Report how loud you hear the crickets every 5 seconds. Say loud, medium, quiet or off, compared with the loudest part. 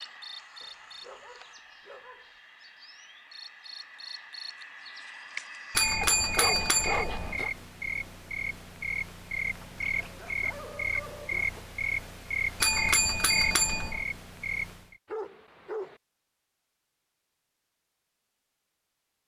quiet, loud, loud, off.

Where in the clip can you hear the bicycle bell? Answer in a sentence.
You can hear the bicycle bell from 5.7 to 7.5 s and from 12.6 to 14.1 s.